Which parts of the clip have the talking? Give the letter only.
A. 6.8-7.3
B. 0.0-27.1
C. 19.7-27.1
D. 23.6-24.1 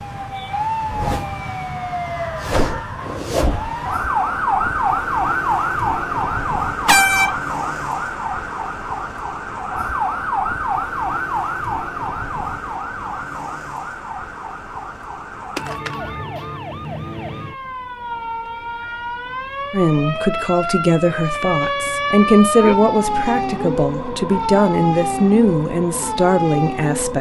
C.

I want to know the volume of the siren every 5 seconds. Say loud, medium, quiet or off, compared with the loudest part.
loud, loud, loud, medium, loud, loud.